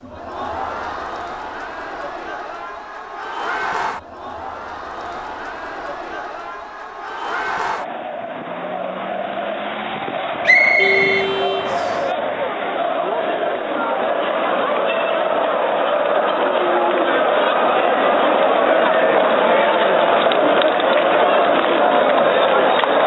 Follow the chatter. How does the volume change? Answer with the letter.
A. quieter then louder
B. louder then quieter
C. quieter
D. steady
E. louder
E.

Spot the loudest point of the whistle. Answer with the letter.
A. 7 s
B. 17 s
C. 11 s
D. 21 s
C.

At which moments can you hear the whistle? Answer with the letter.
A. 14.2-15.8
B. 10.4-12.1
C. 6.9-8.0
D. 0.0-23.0
B.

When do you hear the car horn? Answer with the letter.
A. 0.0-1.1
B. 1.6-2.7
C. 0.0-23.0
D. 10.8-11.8
D.